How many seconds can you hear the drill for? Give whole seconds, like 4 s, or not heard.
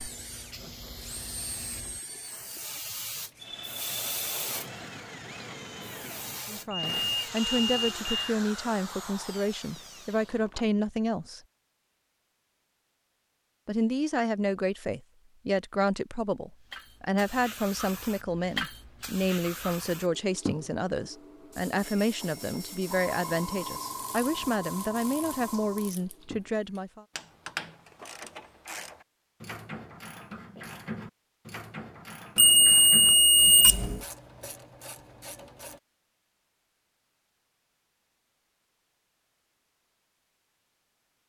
11 s.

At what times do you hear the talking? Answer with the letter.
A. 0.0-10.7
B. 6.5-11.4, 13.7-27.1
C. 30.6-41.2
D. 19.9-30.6
B.